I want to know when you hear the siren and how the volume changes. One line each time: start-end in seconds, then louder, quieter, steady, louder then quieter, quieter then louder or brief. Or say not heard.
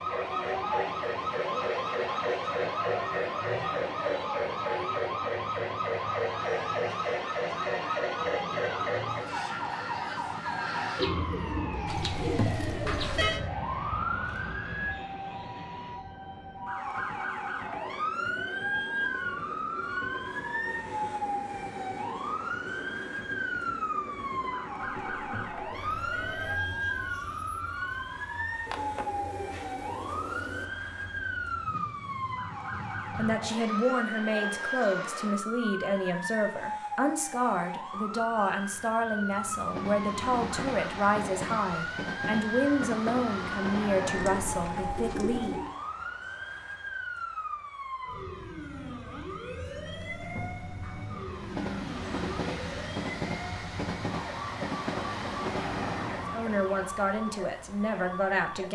0.0-58.7 quieter.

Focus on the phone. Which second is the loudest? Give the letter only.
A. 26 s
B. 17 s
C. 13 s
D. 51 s
C.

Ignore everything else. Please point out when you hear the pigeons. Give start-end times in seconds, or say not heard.
10.9-13.5, 28.6-30.6, 44.1-45.8.